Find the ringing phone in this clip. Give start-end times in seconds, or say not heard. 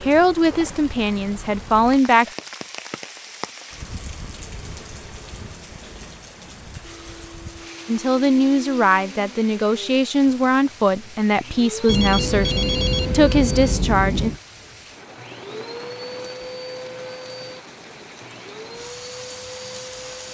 11.8-14.4.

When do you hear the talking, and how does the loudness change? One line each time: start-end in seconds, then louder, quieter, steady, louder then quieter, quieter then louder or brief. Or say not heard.
0.1-2.2 brief
7.8-14.3 steady.